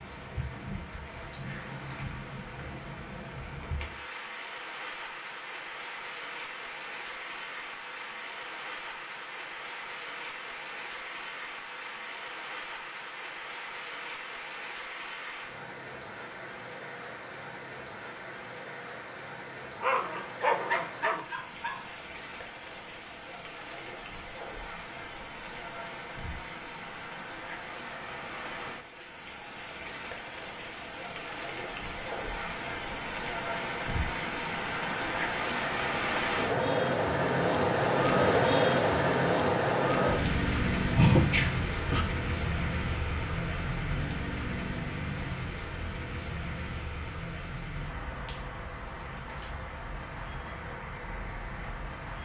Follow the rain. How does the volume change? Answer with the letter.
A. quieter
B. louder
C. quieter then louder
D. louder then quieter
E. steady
D.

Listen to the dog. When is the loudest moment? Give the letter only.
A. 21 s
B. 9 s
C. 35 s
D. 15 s
A.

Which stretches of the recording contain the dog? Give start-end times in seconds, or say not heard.
19.8-21.9.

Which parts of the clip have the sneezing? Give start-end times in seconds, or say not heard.
41.0-42.0.